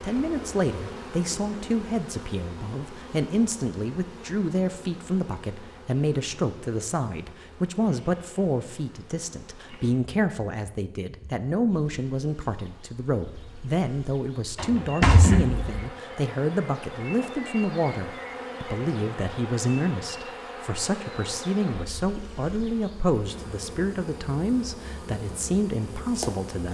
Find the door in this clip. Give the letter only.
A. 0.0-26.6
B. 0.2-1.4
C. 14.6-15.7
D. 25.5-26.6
C.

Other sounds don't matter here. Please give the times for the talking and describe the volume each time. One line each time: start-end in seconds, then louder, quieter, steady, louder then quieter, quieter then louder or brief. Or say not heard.
0.0-26.6 steady.